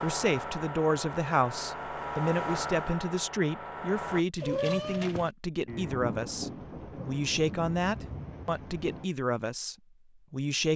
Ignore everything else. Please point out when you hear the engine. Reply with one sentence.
You can hear the engine from 0.0 to 4.2 s.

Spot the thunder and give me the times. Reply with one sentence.
The thunder can be heard from 5.7 to 9.1 s.